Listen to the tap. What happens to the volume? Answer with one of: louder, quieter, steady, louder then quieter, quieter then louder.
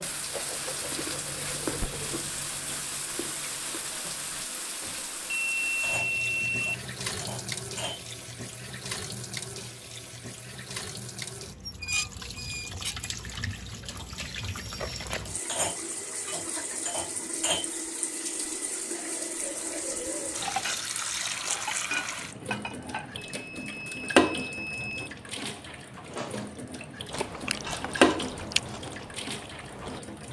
louder.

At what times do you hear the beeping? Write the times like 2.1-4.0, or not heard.
4.8-6.8, 23.3-25.1.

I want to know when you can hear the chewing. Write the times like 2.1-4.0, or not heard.
0.0-4.5, 27.1-30.0.